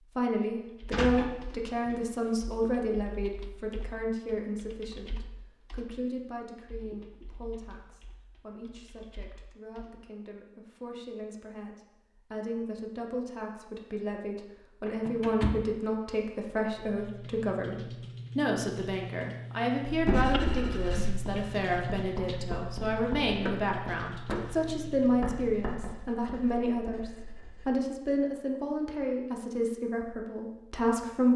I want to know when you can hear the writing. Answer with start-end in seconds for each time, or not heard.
19.9-27.8.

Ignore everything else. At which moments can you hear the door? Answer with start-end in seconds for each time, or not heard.
0.9-2.0, 14.8-15.8, 23.2-24.7.